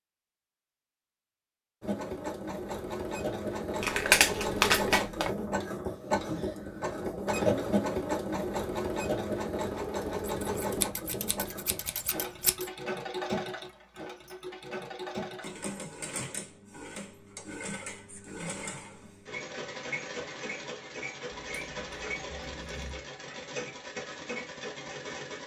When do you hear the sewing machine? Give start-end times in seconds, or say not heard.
1.8-25.4.